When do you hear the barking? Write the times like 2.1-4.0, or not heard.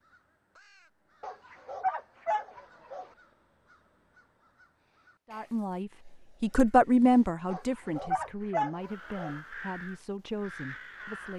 1.2-3.0, 7.5-9.3.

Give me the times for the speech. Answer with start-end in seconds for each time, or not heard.
5.2-11.3.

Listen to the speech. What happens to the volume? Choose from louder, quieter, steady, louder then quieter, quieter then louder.
louder then quieter.